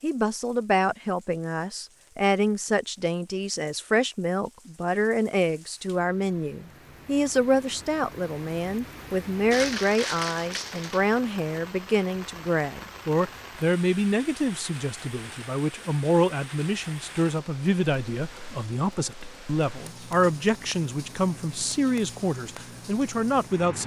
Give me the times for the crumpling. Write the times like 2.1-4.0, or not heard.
9.5-11.0.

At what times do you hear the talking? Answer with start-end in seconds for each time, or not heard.
0.0-23.8.